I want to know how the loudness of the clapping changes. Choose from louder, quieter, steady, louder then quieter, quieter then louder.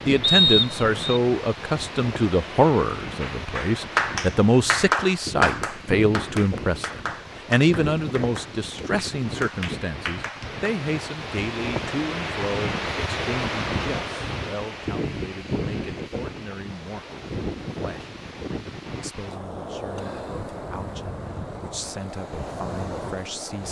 quieter then louder.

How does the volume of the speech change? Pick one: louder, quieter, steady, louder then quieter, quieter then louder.
quieter.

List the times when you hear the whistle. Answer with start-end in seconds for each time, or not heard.
0.2-1.2.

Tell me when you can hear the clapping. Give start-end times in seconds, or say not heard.
3.2-10.8.